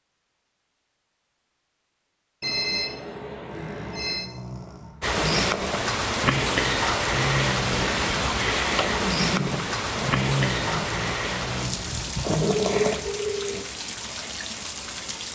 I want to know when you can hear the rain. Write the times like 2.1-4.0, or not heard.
5.0-15.2.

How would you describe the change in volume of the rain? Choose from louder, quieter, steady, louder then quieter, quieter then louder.
quieter.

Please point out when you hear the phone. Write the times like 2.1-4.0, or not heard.
2.4-4.2, 12.4-13.6.